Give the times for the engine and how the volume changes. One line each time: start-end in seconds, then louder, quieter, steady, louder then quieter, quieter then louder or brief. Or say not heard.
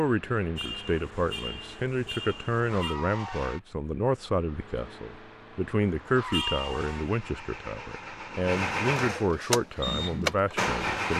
0.0-11.1 louder.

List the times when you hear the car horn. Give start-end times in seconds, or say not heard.
0.6-3.0, 6.3-7.0.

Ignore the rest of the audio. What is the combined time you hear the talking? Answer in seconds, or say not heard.
11 s.